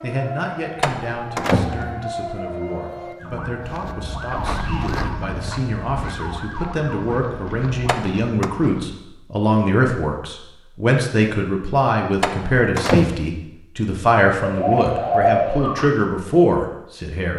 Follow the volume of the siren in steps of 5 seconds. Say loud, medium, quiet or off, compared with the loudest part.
loud, loud, off, off.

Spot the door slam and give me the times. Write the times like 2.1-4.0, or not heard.
0.8-2.0, 7.8-8.5, 12.2-13.2.